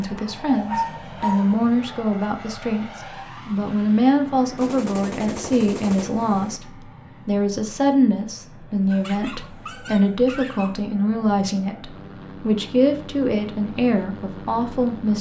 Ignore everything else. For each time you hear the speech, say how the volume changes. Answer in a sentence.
You can hear the speech from 0.0 to 15.1 s, at a steady volume.